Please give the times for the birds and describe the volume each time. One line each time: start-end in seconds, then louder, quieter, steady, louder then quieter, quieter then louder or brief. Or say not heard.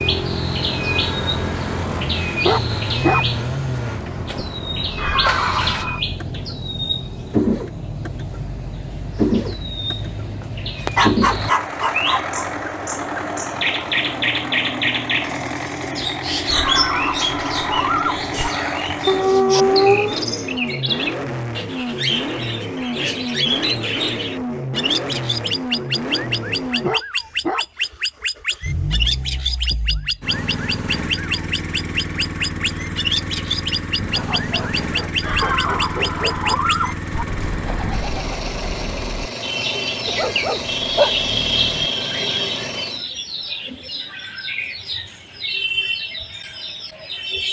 0.0-47.4 steady.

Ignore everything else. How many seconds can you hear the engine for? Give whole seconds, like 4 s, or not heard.
43 s.